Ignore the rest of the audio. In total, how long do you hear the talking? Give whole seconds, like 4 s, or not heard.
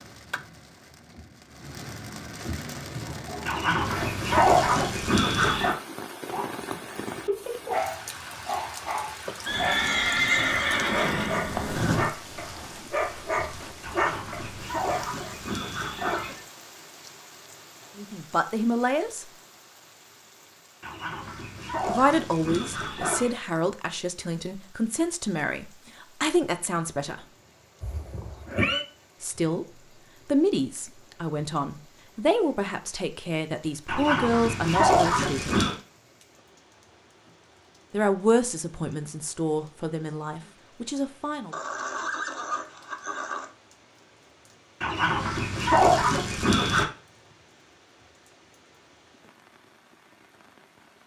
16 s.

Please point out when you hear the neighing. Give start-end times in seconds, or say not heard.
9.4-12.1, 27.8-28.9, 41.5-43.5.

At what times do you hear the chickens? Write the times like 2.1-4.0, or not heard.
3.5-5.8, 13.8-16.4, 20.8-23.4, 33.9-35.8, 44.8-46.9.